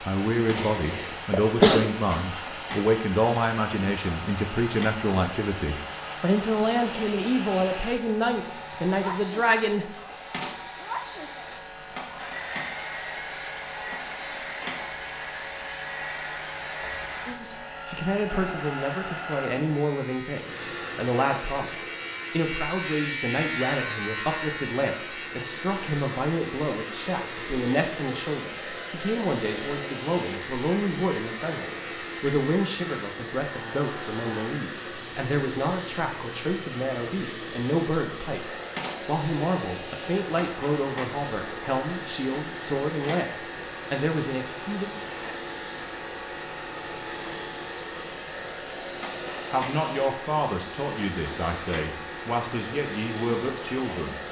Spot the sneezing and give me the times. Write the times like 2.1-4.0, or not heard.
0.6-1.9.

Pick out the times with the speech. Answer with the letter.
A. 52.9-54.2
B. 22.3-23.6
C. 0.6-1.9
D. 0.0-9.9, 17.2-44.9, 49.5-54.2
D.